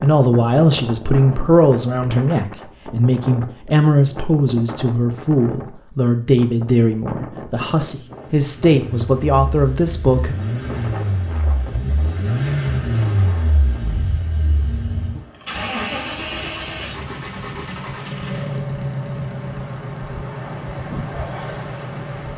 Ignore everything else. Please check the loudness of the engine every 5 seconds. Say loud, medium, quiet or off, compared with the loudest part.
off, quiet, loud, loud, medium.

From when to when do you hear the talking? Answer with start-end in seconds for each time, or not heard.
0.0-10.3.